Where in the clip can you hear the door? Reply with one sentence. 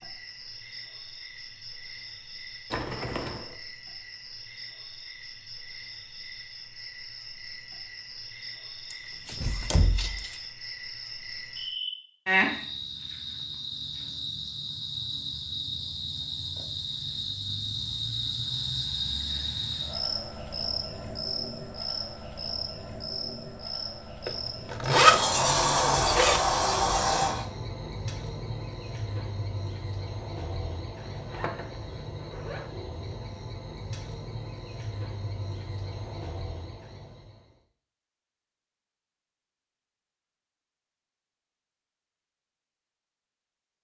The door can be heard from 8.9 to 10.3 s and from 24.8 to 27.5 s.